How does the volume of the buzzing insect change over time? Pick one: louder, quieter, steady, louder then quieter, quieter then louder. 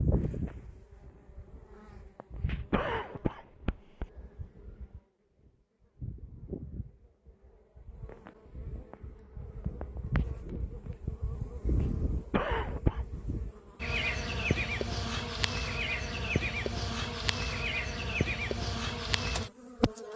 louder.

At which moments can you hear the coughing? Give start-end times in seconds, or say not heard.
2.7-4.1, 12.3-13.1.